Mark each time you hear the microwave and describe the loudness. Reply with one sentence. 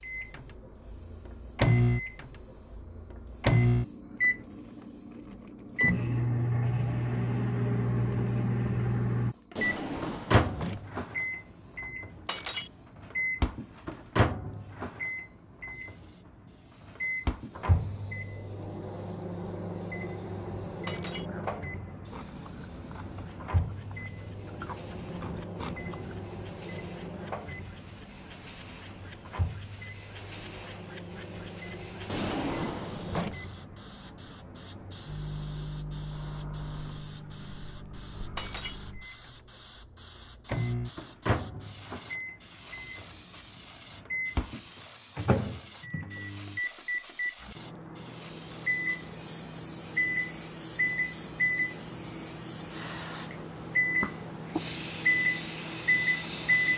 You can hear the microwave from 0.0 to 56.7 s, getting quieter then louder.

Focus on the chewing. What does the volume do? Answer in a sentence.
The volume of the chewing goes up.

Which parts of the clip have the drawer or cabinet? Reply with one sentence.
You can hear the drawer or cabinet from 9.6 to 10.8 s and from 32.0 to 33.4 s.